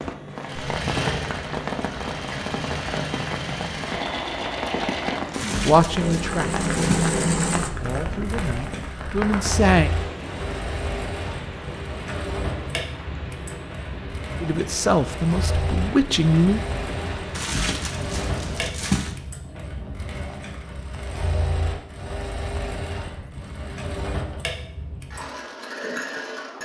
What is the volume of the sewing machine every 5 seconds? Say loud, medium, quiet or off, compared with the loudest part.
loud, loud, medium, medium, medium, medium.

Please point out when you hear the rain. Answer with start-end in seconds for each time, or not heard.
0.0-18.8.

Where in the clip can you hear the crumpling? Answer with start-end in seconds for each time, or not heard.
5.3-7.2, 17.4-19.1.